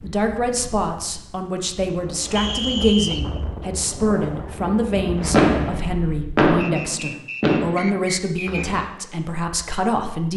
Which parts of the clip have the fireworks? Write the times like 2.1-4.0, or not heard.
4.6-8.8.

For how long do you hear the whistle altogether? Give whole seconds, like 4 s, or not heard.
3 s.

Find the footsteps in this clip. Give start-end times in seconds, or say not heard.
not heard.